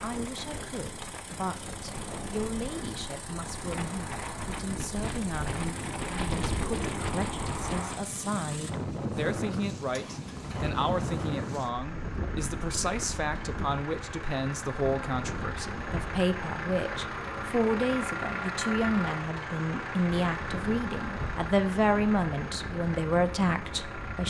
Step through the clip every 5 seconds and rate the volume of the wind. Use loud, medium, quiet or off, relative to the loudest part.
medium, loud, loud, medium, medium.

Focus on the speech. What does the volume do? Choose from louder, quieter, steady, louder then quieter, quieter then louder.
louder.